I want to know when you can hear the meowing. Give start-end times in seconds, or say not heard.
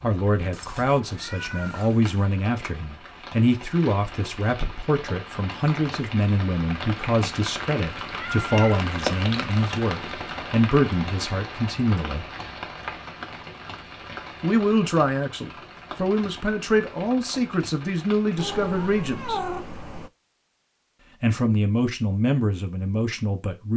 0.5-2.1, 8.1-8.8, 18.4-20.1.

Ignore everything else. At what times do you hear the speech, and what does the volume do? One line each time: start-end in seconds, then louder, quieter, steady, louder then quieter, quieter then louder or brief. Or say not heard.
0.0-12.3 steady
14.4-19.4 steady
21.2-23.7 brief.